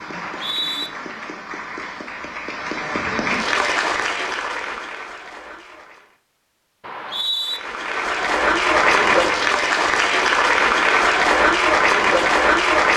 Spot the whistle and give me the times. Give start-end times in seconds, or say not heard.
0.1-0.9, 6.8-7.6.